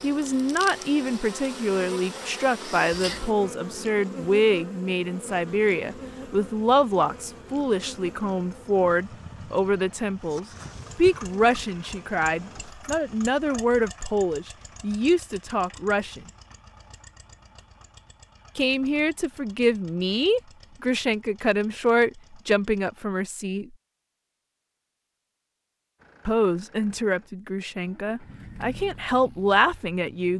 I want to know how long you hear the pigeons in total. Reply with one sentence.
You can't hear the pigeons here.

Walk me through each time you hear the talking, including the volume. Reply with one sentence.
You can hear the talking from 0.0 to 16.2 s, at a steady volume; from 18.6 to 23.7 s, at a steady volume; and from 26.2 to 30.3 s, getting quieter then louder.